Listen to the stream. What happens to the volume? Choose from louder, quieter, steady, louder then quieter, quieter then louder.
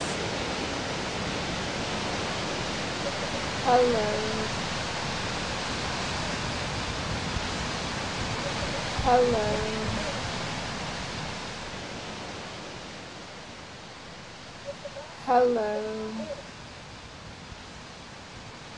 quieter.